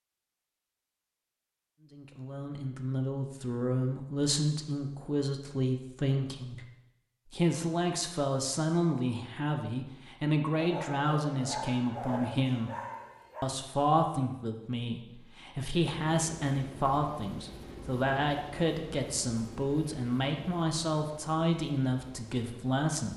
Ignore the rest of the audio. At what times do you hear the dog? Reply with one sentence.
The dog can be heard from 10.6 to 13.5 s.